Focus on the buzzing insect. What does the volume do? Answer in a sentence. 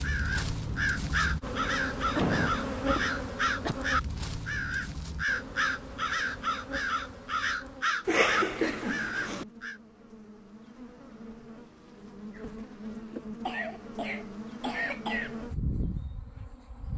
The volume of the buzzing insect goes down, then up.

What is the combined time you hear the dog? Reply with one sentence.
The dog can't be heard in this clip.